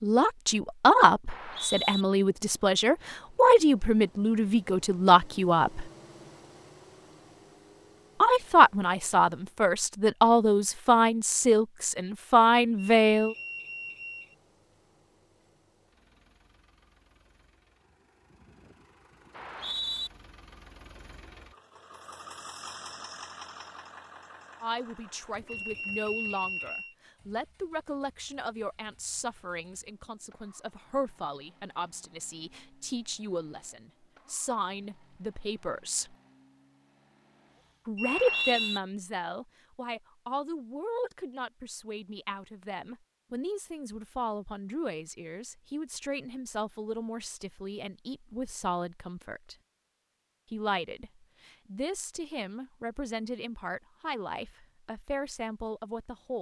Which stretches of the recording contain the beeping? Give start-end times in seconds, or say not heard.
12.8-14.3, 25.4-26.9, 38.0-38.8.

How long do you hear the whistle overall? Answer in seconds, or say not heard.
2 s.